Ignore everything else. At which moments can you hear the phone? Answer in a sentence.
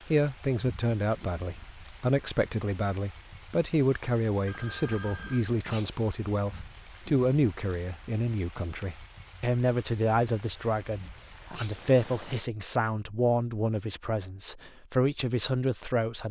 You can hear the phone from 4.5 to 5.5 s.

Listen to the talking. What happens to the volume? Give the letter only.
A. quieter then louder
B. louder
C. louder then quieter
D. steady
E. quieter
D.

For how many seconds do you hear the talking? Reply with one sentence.
You can hear the talking for 16 seconds altogether.